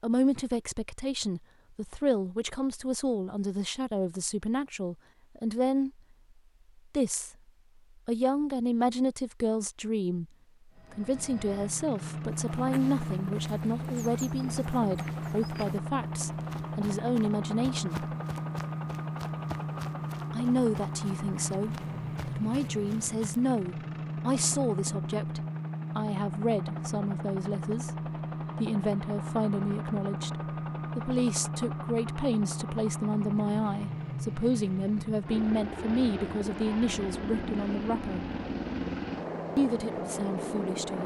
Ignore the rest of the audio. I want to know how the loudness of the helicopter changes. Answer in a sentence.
The volume of the helicopter stays about the same.